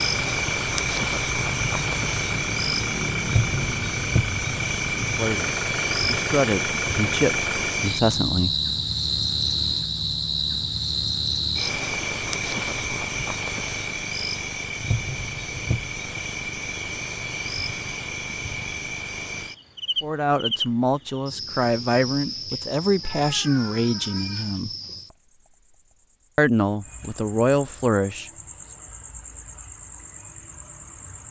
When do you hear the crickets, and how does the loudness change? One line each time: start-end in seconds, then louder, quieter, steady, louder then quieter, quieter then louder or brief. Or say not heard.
0.0-31.2 quieter.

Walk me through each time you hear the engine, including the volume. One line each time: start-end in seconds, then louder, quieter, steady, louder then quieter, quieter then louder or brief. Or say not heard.
0.0-7.8 steady.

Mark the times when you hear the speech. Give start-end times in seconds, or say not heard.
5.0-8.6, 20.0-24.7, 26.4-28.3.